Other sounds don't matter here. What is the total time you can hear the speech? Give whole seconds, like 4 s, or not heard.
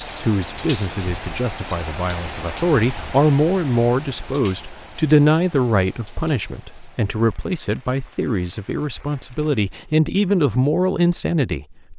12 s.